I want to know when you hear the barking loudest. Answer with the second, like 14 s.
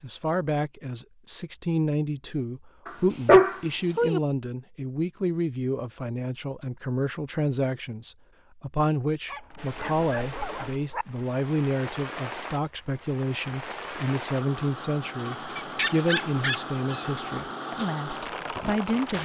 3 s.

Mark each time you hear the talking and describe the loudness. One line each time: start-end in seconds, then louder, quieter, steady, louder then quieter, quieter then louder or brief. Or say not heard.
0.0-19.1 steady.